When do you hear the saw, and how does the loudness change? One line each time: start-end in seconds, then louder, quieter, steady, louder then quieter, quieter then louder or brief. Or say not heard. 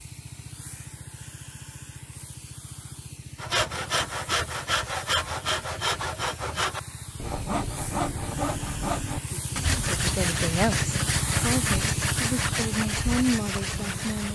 3.4-14.3 steady.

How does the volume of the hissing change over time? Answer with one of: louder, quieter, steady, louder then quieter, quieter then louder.
louder.